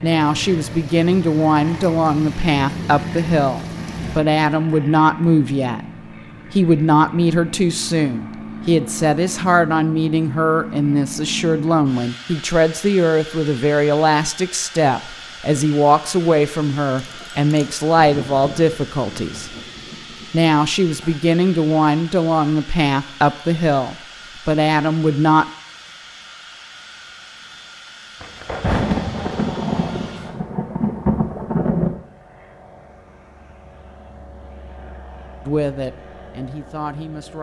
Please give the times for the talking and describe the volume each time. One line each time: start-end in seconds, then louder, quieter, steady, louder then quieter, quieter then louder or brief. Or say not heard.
0.0-5.8 steady
6.5-19.5 steady
20.3-25.4 steady
35.5-37.3 brief.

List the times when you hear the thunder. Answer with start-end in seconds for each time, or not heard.
0.1-4.2, 17.9-20.6, 28.2-32.0.